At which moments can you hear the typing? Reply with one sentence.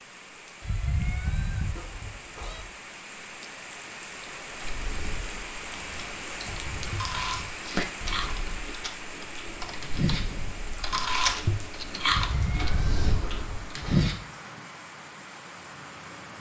The typing can be heard from 4.2 to 13.8 s.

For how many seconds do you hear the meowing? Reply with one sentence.
You can hear the meowing for 5 seconds altogether.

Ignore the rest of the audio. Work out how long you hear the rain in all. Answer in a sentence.
You can hear the rain for 16 seconds altogether.